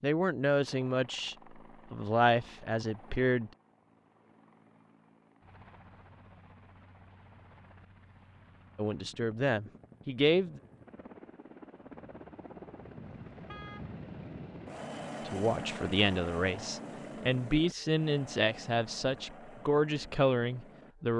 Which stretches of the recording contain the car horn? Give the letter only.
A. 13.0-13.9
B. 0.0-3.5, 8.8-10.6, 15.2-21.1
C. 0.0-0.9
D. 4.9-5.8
A.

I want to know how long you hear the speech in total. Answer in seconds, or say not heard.
11 s.